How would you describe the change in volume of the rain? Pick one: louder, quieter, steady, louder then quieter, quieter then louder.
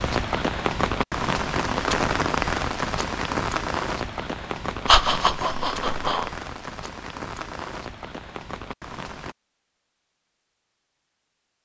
quieter.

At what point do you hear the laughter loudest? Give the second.
5 s.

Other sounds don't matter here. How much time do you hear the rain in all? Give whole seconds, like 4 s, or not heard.
9 s.